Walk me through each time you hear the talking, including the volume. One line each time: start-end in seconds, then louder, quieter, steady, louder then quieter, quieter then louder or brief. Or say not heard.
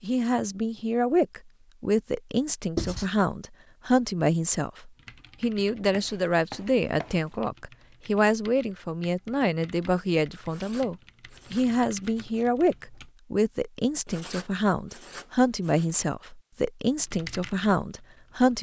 0.0-18.5 steady.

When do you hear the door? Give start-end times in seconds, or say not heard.
not heard.